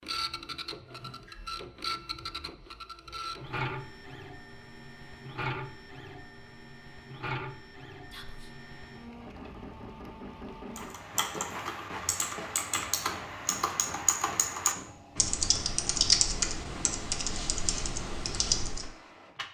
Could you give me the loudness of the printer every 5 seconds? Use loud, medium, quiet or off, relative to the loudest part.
loud, loud, medium, medium.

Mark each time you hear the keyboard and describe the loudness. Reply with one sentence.
You can hear the keyboard from 10.8 to 18.9 s, getting louder then quieter.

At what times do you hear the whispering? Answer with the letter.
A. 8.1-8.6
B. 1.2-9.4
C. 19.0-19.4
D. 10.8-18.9
A.